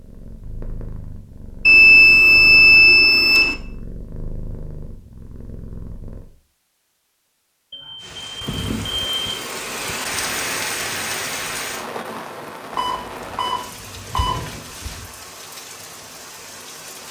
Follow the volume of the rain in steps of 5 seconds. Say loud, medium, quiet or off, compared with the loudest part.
off, loud, loud, medium.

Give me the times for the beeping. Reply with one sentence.
You can hear the beeping from 1.6 to 3.5 s, from 7.7 to 9.5 s and from 12.8 to 15.1 s.